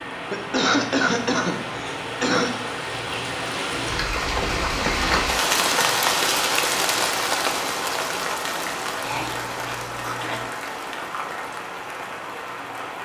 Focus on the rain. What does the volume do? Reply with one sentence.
The loudness of the rain goes up, then down.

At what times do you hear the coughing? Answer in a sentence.
The coughing can be heard from 0.3 to 2.5 s, from 5.0 to 6.0 s and from 9.0 to 10.5 s.